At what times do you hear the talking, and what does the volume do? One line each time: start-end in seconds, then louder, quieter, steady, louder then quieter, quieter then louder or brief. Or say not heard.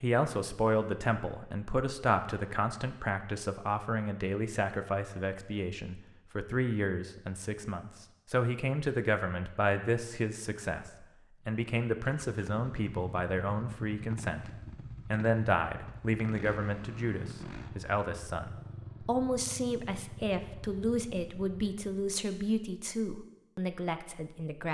0.0-24.6 steady.